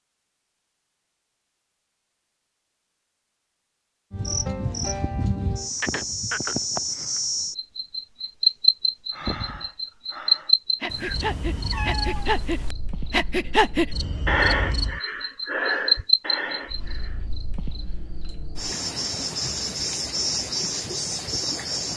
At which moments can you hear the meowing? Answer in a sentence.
The meowing can be heard from 10.8 to 12.8 s.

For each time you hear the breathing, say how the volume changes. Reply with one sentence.
The breathing can be heard from 9.1 to 17.2 s, getting louder then quieter.